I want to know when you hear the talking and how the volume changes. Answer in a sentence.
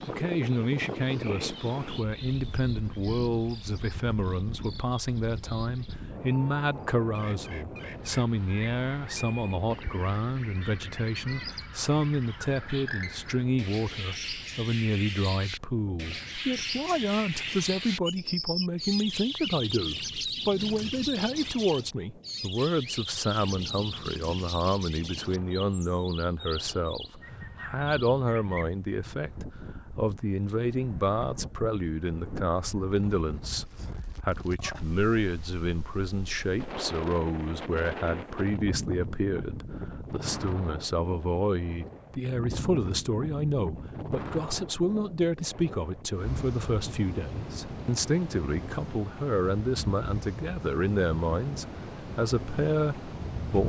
The talking can be heard from 0.1 to 53.6 s, at a steady volume.